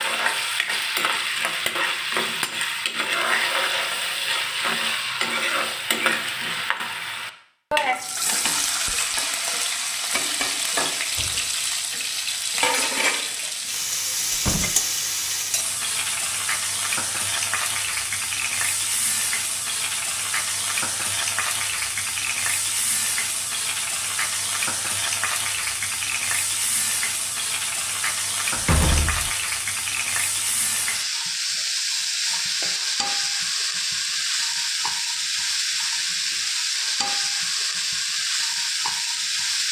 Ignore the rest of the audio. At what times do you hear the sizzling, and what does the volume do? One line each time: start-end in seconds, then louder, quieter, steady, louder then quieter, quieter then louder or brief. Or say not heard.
0.0-39.6 steady.